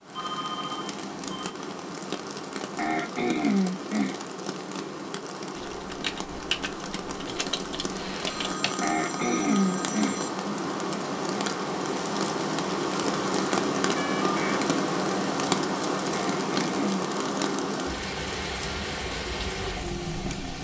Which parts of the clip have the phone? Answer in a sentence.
You can hear the phone from 0.1 to 1.6 s, from 8.2 to 10.3 s and from 13.9 to 14.6 s.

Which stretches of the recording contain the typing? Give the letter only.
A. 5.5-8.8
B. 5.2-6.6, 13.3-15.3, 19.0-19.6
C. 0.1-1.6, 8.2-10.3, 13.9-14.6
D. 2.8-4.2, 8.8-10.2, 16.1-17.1
A.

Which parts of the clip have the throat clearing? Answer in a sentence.
The throat clearing can be heard from 2.8 to 4.2 s, from 8.8 to 10.2 s and from 16.1 to 17.1 s.